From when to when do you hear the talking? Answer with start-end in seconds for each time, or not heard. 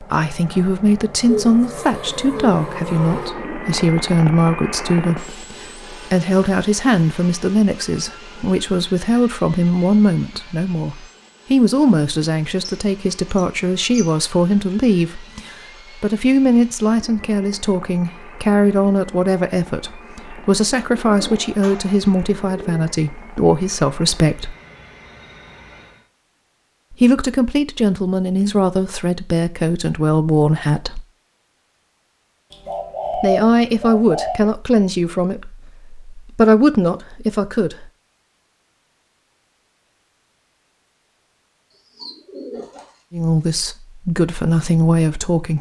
0.0-24.6, 26.9-31.1, 33.1-37.9, 43.1-45.5.